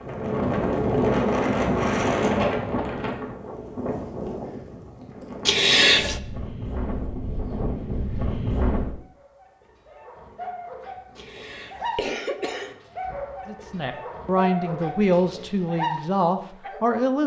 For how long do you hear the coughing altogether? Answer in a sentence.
The coughing can be heard for 2 seconds in total.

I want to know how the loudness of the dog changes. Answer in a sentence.
The loudness of the dog goes up.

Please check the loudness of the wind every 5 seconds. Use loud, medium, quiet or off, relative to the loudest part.
loud, medium, off, off.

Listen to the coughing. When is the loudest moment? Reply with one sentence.
The volume of the coughing peaks at 6 seconds.